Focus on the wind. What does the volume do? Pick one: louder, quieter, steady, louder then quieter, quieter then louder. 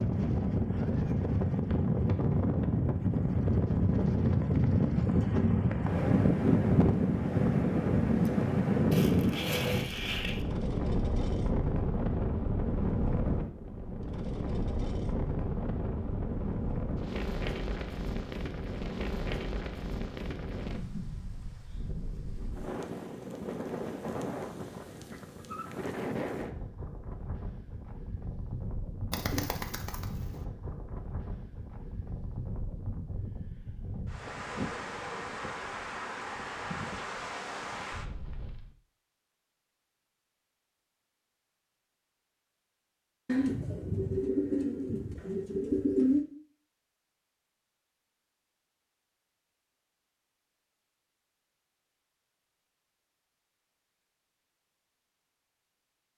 quieter.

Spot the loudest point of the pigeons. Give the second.
46 s.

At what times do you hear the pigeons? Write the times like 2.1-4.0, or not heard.
8.9-10.4, 29.1-30.4, 43.2-46.2.